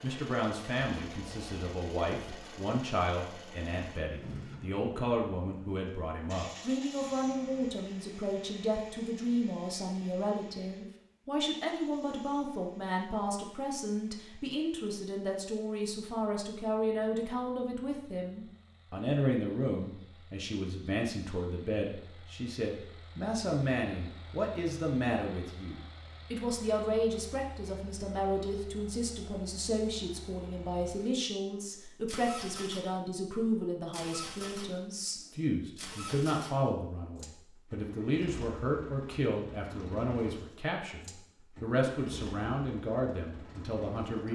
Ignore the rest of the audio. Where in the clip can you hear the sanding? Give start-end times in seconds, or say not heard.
not heard.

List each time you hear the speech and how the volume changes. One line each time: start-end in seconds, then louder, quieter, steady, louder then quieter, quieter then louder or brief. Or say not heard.
0.0-44.3 steady.